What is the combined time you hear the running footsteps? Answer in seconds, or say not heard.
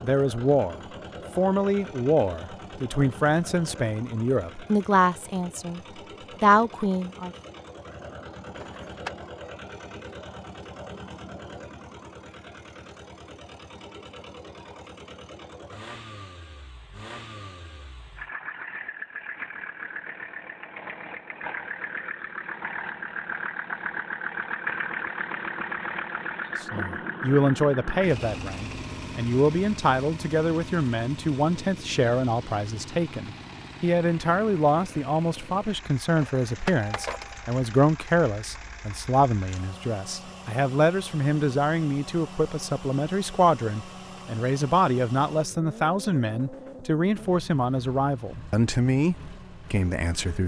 not heard.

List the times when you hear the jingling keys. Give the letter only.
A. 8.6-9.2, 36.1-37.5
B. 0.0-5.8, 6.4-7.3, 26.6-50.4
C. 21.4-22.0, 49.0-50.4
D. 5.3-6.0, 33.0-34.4
A.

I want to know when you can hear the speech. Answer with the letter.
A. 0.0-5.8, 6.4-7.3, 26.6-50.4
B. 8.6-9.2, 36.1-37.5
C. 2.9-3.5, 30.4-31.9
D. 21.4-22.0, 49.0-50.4
A.